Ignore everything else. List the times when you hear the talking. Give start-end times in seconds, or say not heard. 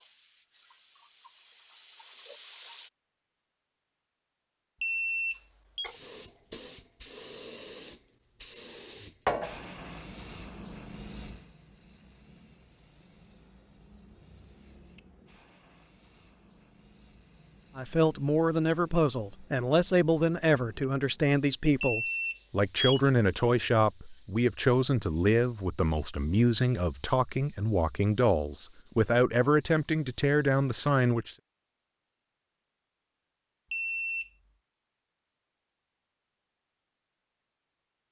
17.8-31.4.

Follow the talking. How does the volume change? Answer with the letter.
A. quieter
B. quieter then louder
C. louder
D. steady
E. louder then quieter
D.